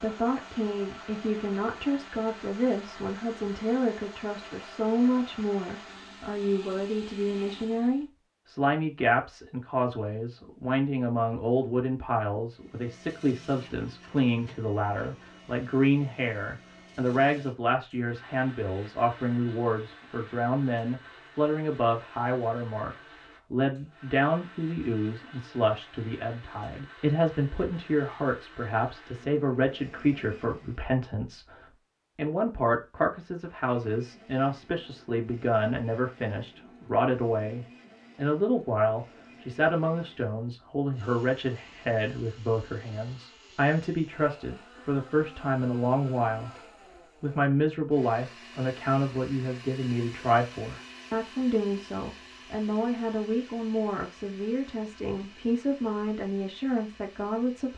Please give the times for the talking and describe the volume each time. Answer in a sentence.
The talking can be heard from 0.0 to 57.7 s, at a steady volume.